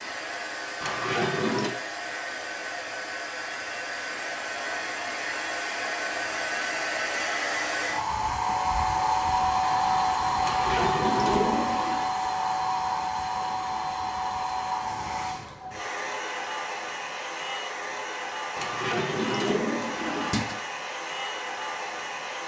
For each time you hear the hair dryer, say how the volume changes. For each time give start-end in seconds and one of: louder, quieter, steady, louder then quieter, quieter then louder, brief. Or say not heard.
0.0-22.4 louder then quieter.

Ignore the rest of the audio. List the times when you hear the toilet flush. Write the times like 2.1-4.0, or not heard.
0.8-1.7, 10.4-12.1, 18.6-20.6.